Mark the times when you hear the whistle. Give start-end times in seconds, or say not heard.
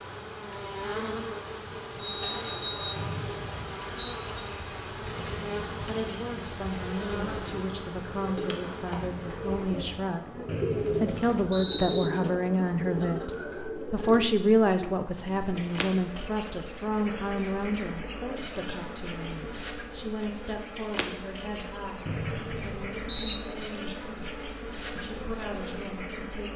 3.0-4.2, 10.4-12.1, 22.1-23.4.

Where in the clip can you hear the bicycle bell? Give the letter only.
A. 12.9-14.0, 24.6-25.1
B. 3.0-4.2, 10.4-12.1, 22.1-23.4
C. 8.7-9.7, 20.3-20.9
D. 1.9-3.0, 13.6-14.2
D.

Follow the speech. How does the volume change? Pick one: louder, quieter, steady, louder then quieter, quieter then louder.
louder then quieter.